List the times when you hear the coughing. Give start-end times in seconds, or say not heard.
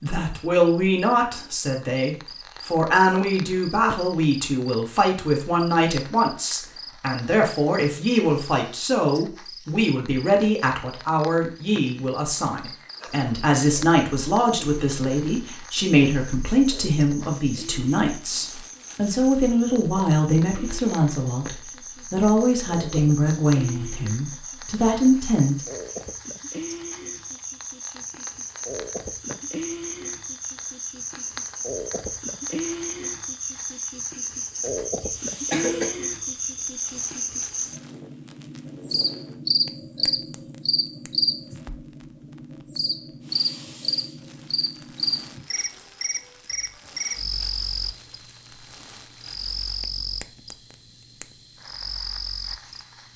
34.6-35.9.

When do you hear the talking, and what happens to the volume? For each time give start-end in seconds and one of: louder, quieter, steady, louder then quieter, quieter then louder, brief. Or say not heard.
0.0-25.6 steady.